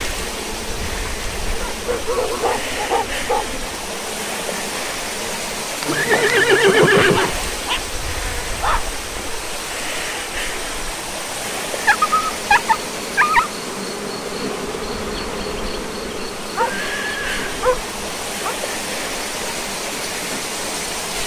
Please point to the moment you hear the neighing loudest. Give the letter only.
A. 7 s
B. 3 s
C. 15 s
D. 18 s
A.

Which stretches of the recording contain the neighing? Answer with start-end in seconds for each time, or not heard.
5.8-7.3, 16.8-17.6.